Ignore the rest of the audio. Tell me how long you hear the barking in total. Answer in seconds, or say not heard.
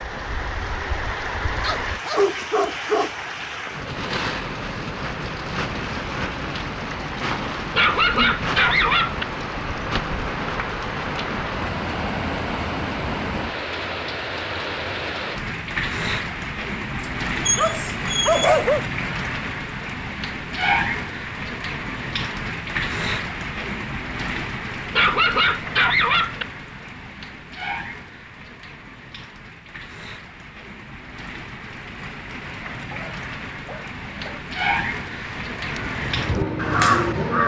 8 s.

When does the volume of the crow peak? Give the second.
37 s.